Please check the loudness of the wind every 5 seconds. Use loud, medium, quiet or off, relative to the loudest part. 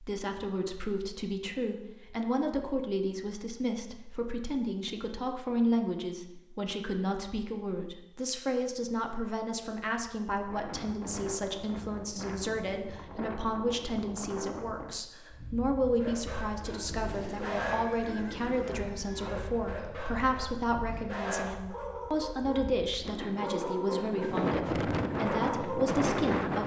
off, off, quiet, quiet, medium, loud.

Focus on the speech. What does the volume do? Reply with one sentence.
The volume of the speech stays about the same.